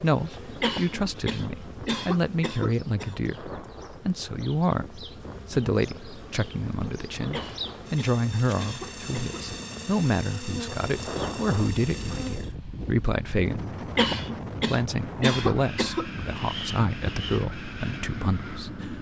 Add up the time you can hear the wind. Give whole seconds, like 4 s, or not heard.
19 s.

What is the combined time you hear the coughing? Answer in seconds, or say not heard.
7 s.